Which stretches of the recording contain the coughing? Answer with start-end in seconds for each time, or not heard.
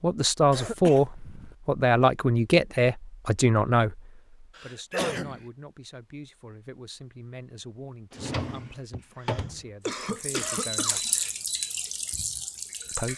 0.5-1.6, 4.5-5.5, 8.9-11.3.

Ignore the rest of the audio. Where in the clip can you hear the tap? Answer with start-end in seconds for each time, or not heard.
9.9-13.1.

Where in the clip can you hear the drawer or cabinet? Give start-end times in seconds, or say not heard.
8.1-9.7.